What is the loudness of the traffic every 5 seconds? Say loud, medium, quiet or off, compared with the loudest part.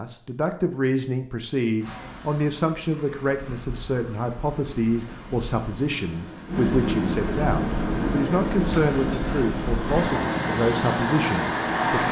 quiet, loud, loud.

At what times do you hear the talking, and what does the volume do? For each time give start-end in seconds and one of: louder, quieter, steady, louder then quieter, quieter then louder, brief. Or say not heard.
0.0-12.0 steady.